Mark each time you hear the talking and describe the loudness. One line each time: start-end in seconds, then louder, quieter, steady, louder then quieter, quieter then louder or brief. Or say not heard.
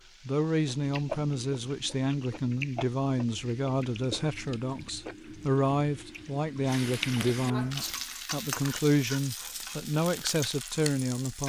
0.2-11.4 steady.